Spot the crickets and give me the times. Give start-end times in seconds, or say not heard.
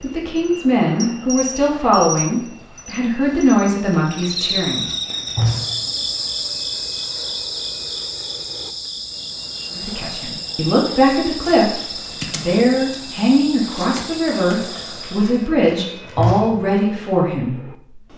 0.0-15.4.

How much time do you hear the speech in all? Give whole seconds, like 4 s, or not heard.
13 s.